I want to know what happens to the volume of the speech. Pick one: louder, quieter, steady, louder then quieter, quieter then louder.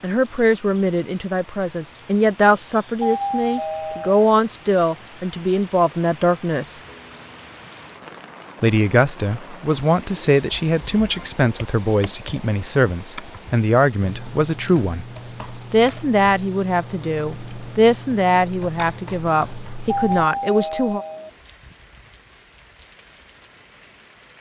steady.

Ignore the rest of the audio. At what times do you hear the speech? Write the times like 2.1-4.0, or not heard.
0.0-6.8, 8.6-15.1, 15.7-21.1.